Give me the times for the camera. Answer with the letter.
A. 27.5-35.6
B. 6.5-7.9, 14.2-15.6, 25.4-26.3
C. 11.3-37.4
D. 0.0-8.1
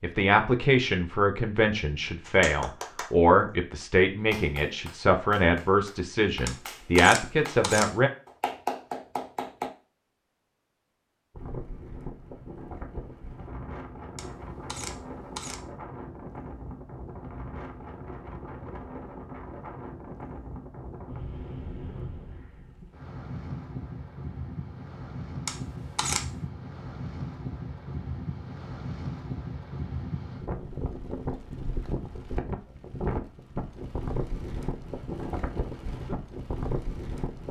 B.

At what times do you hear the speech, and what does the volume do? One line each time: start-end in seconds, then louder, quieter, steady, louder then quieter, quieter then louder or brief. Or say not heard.
0.0-8.1 steady.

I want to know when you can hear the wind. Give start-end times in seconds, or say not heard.
11.3-37.4.